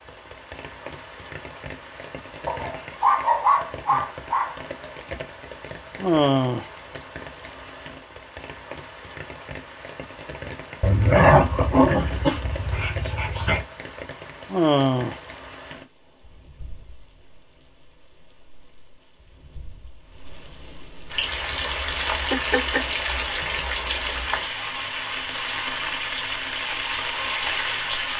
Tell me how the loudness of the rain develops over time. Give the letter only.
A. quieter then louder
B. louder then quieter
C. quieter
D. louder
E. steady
D.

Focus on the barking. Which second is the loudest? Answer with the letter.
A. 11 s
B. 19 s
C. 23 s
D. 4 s
A.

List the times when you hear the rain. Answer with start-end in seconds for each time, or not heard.
0.0-28.1.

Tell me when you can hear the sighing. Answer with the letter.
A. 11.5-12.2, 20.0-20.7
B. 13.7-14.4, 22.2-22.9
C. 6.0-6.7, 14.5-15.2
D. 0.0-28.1
C.